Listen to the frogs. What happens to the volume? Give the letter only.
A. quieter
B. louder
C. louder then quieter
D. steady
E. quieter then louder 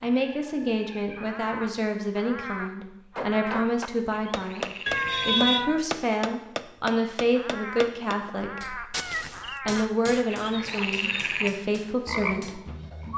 B.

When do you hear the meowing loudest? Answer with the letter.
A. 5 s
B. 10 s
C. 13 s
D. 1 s
A.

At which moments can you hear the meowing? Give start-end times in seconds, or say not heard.
0.1-1.4, 4.8-5.8, 8.9-9.7.